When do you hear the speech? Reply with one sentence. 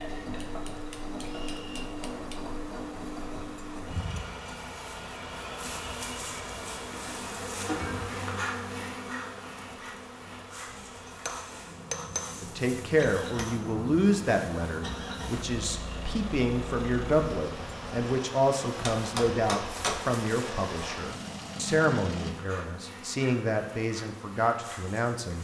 You can hear the speech from 12.4 to 25.3 s.